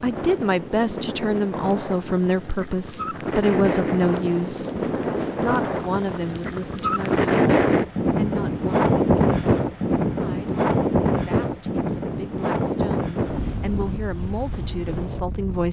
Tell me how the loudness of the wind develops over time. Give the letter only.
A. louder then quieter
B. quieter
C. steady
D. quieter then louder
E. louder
A.